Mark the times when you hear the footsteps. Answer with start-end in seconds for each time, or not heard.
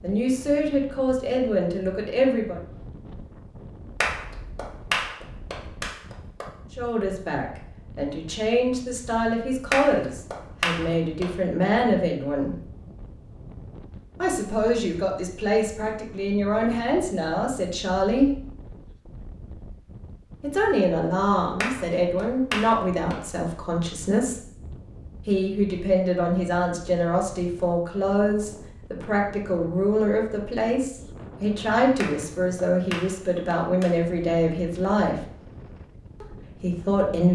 not heard.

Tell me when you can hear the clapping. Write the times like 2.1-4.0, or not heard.
4.0-6.5, 9.7-11.3, 21.6-23.1, 32.0-34.0.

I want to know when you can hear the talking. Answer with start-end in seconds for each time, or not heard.
0.0-2.6, 6.8-12.6, 14.2-18.3, 20.4-24.4, 25.2-35.2, 36.2-37.3.